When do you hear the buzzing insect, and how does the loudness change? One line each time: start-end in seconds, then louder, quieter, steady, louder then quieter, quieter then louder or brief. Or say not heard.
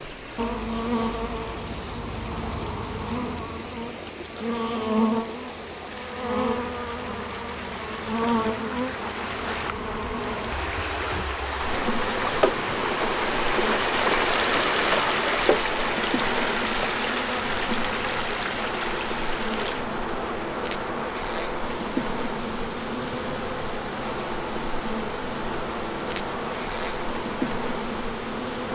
0.0-28.7 steady.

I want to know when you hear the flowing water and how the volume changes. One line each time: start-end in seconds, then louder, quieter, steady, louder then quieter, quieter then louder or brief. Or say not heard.
0.0-28.7 louder then quieter.